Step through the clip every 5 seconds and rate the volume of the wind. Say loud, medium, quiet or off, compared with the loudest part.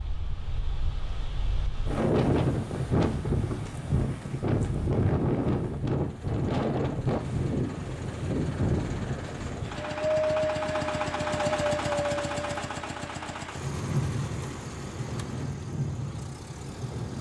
loud, loud, loud, medium.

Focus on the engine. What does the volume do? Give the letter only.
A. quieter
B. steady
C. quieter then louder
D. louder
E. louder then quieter
E.